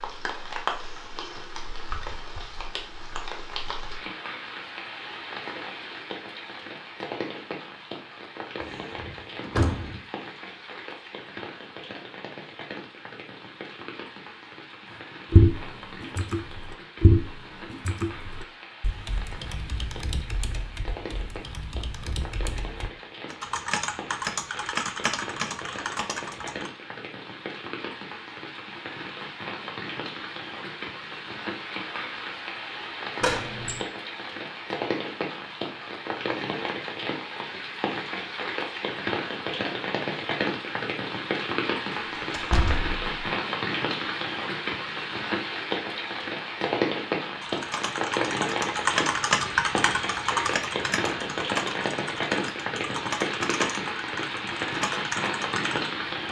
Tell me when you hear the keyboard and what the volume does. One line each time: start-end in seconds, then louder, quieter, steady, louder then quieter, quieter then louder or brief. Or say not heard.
15.3-26.7 quieter then louder
47.4-56.0 quieter.